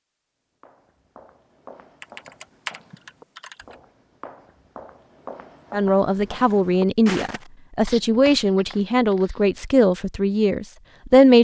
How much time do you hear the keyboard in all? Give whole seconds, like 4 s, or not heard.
2 s.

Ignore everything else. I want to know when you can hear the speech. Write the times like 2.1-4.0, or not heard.
5.7-11.3.